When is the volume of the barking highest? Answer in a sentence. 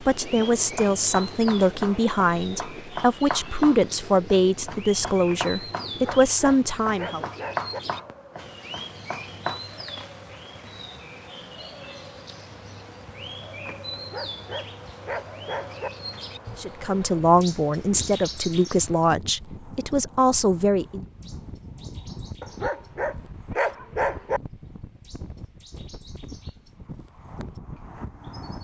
The volume of the barking peaks at 24 seconds.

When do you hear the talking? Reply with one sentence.
The talking can be heard from 0.0 to 7.3 s and from 16.6 to 21.1 s.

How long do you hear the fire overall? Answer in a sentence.
The fire can't be heard in this clip.